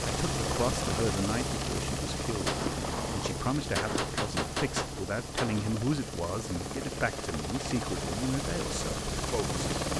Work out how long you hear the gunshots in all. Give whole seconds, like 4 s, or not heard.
3 s.